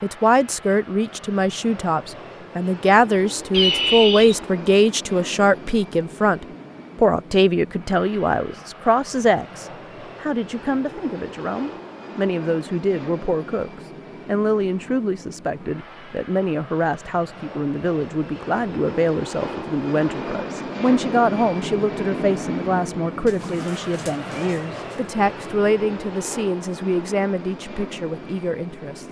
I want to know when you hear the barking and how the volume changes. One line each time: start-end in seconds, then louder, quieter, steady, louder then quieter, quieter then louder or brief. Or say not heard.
not heard.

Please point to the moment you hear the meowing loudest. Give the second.
4 s.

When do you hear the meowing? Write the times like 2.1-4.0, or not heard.
3.5-4.5, 23.2-24.8.